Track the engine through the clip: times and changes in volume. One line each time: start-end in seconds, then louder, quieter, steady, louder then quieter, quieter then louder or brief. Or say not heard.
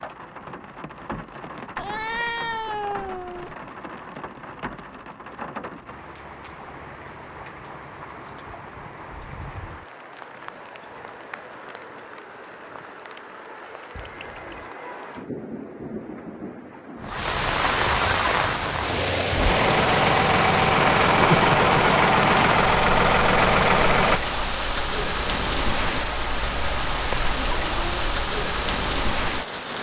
19.3-24.2 steady.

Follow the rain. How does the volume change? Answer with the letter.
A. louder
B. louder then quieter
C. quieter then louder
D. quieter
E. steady
A.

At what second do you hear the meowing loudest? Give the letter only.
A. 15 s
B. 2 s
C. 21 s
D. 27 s
B.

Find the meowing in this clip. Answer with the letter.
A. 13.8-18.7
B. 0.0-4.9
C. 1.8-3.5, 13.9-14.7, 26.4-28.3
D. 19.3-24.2
C.